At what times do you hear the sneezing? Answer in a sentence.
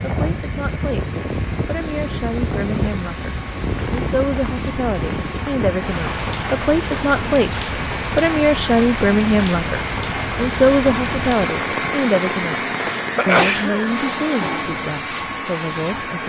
You can hear the sneezing from 12.9 to 13.9 s.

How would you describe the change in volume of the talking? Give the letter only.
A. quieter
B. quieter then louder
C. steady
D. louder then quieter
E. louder
D.